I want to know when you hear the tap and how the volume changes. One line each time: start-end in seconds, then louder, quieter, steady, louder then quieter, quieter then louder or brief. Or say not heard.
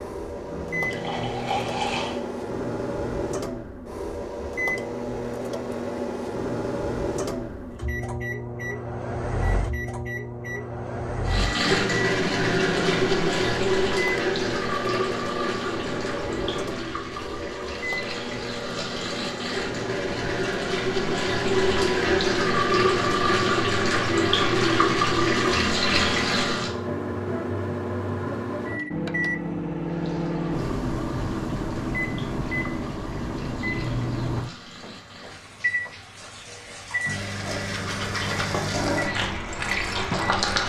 0.0-2.2 brief
11.2-26.8 quieter then louder
29.8-40.6 louder.